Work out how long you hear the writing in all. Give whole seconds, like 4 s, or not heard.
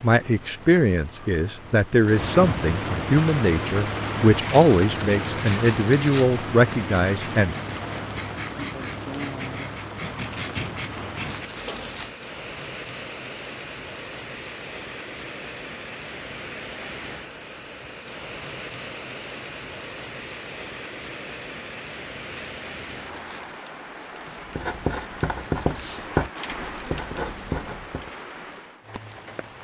13 s.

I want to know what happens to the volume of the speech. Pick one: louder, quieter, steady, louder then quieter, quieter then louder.
steady.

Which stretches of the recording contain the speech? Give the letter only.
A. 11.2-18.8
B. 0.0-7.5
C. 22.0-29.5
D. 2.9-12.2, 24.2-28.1
B.